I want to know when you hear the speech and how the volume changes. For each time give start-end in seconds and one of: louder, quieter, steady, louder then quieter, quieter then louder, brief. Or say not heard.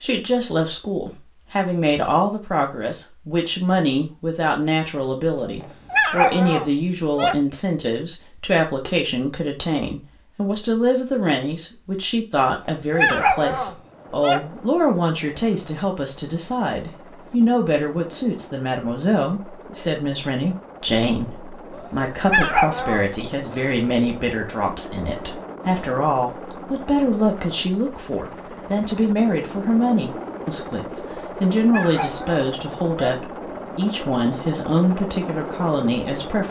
0.0-36.4 steady.